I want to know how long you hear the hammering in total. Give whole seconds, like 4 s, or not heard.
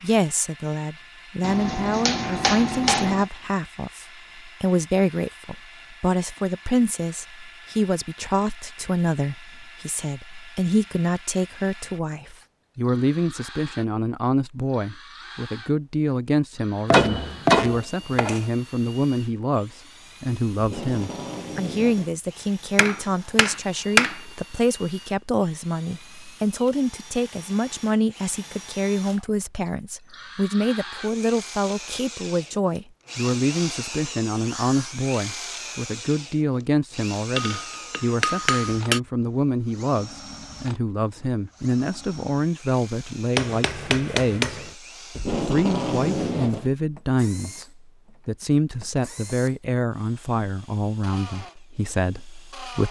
8 s.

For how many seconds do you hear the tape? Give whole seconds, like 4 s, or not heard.
3 s.